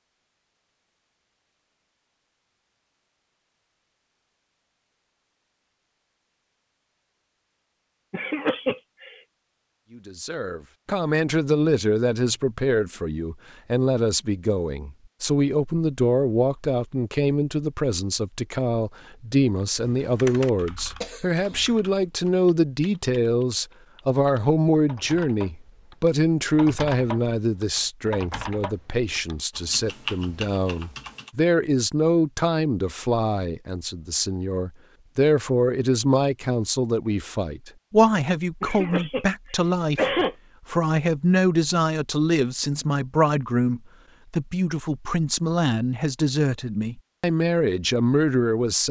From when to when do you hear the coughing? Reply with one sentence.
The coughing can be heard from 8.1 to 9.1 s, from 21.0 to 21.6 s and from 38.6 to 40.4 s.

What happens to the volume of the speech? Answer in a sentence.
The volume of the speech stays about the same.